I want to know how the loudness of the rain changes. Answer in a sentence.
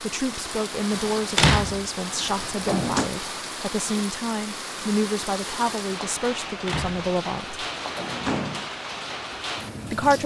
The volume of the rain stays about the same.